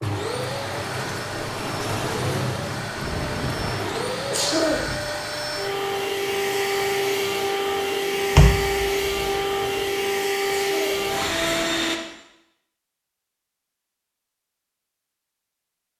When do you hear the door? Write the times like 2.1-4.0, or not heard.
8.3-9.3.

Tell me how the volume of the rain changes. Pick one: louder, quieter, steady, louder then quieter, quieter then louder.
quieter.